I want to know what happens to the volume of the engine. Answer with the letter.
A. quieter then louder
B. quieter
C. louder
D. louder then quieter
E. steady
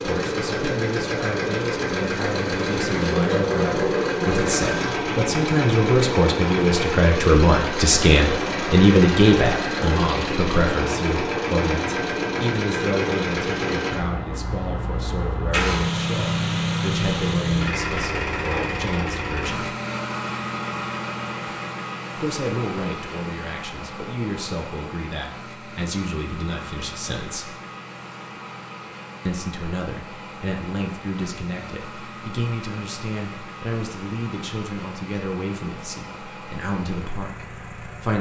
B.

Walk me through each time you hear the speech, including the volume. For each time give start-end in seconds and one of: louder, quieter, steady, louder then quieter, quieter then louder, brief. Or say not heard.
0.0-19.8 louder then quieter
22.1-27.6 steady
29.2-38.1 steady.